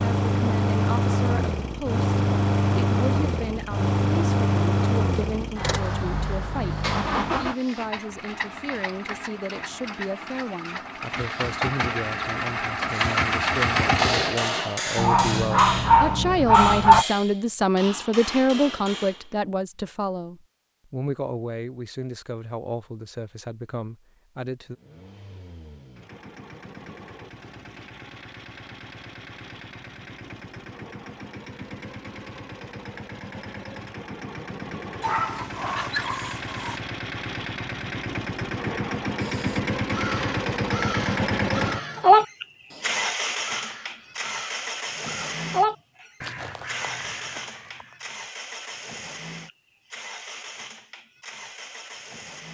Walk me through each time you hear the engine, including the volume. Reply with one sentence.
You can hear the engine from 0.0 to 14.5 s, getting quieter then louder; and from 24.7 to 52.4 s, getting louder then quieter.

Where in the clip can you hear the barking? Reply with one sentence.
The barking can be heard from 14.9 to 17.1 s and from 35.0 to 36.8 s.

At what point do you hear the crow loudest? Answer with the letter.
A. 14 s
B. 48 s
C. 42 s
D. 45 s
C.